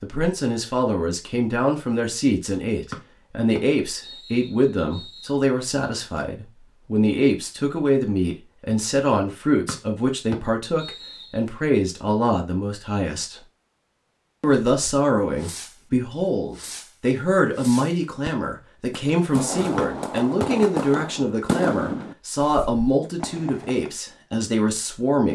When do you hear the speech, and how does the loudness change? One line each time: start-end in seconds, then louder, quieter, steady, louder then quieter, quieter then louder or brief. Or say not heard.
0.0-13.4 steady
14.4-25.3 steady.